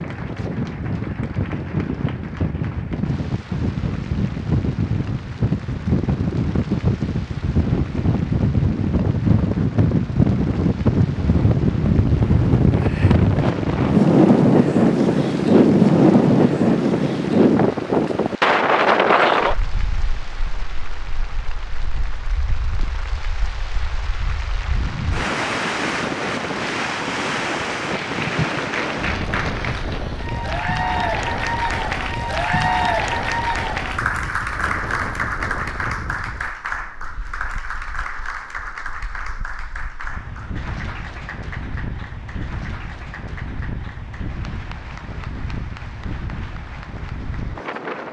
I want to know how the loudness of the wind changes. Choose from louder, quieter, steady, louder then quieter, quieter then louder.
louder then quieter.